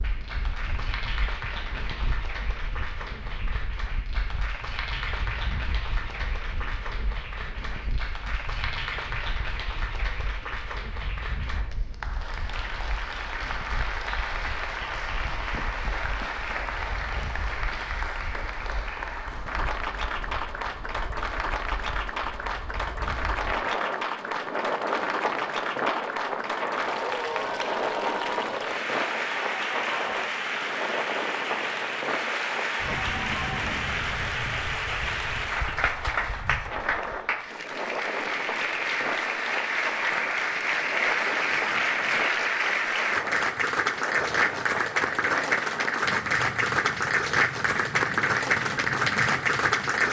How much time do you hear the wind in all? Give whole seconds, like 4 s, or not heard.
50 s.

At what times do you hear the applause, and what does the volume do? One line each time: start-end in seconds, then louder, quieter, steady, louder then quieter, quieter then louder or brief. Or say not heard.
0.0-50.0 louder.